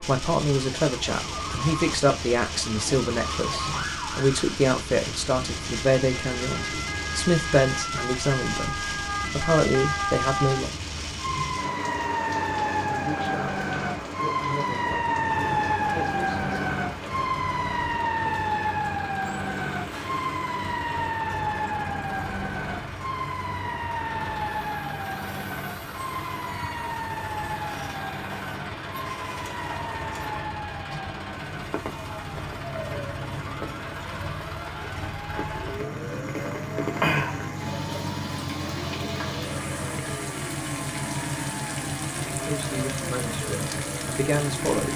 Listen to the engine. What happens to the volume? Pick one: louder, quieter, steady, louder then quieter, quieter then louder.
louder.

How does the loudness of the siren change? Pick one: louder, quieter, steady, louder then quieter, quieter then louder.
louder then quieter.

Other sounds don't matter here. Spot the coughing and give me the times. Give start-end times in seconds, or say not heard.
not heard.